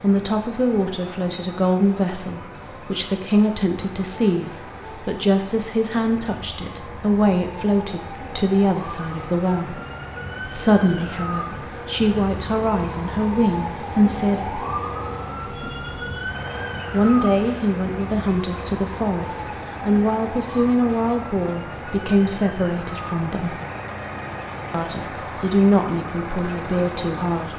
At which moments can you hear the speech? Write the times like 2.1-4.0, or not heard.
0.0-9.8, 10.4-14.6, 16.9-23.6, 24.7-27.5.